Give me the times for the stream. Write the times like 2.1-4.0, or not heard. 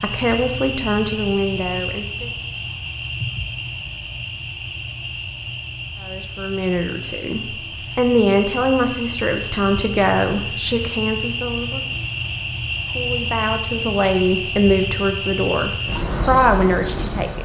not heard.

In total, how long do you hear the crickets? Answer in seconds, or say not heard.
17 s.